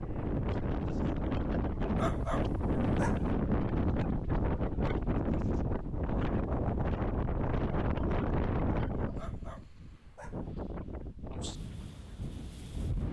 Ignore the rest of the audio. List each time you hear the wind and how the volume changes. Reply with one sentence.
The wind can be heard from 0.0 to 13.0 s, getting quieter.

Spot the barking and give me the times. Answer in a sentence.
You can hear the barking from 1.9 to 3.4 s and from 9.2 to 10.5 s.